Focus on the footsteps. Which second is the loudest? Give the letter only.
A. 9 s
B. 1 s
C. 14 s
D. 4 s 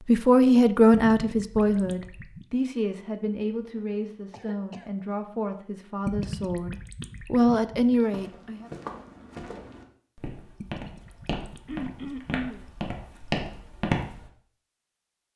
C.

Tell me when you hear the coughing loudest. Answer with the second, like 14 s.
12 s.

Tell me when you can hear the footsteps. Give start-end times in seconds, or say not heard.
7.9-14.2.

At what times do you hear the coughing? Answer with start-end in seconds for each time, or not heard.
3.8-4.9, 11.7-12.7.